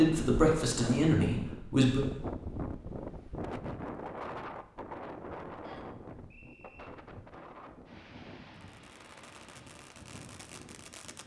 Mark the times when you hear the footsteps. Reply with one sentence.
The footsteps can't be heard in this clip.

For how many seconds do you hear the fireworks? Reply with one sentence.
The fireworks can be heard for 3 seconds in total.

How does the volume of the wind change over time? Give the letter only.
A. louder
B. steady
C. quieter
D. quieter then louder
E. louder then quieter
C.